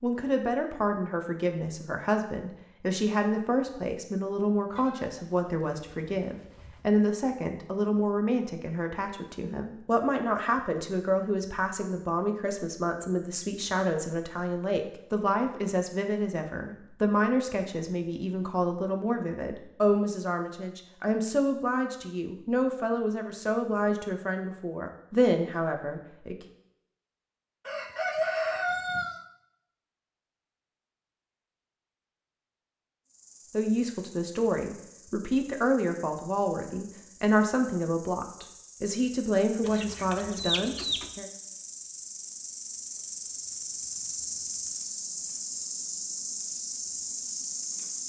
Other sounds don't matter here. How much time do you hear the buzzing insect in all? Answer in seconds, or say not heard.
15 s.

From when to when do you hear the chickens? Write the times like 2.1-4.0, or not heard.
4.8-6.8, 27.6-29.2, 39.6-41.1.